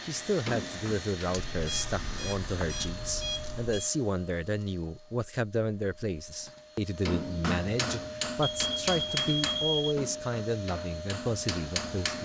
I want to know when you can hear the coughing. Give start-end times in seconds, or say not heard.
not heard.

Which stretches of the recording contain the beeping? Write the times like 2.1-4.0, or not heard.
1.4-3.9, 8.4-9.9.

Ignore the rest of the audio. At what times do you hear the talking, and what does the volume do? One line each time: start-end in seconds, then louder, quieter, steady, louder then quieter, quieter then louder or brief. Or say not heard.
0.0-12.1 steady.